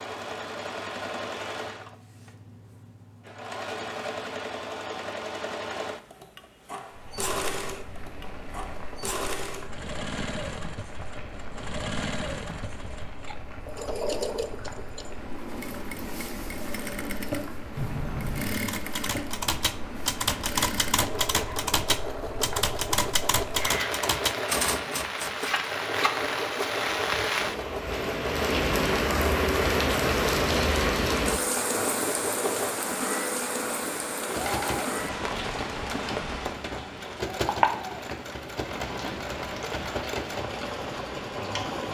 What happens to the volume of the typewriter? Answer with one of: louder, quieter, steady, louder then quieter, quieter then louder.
steady.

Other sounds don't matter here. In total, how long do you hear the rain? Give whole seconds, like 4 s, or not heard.
35 s.